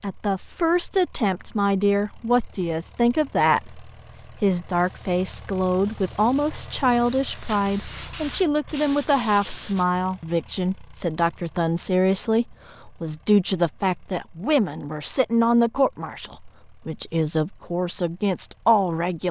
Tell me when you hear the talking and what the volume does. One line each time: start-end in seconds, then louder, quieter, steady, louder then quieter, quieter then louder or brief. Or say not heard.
0.0-19.2 steady.